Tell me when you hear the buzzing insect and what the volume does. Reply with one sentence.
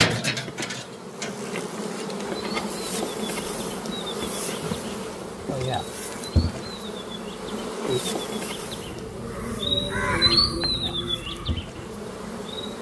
You can hear the buzzing insect from 0.0 to 12.7 s, getting quieter.